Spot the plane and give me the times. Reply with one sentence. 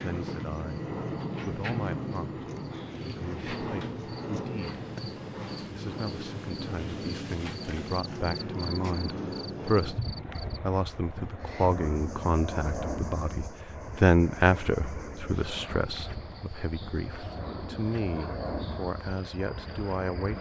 You can hear the plane from 0.0 to 20.3 s.